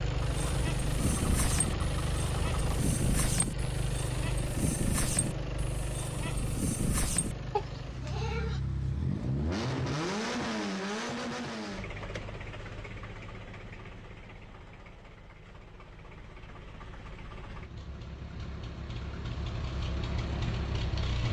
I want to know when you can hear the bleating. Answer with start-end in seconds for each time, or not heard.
0.3-8.6.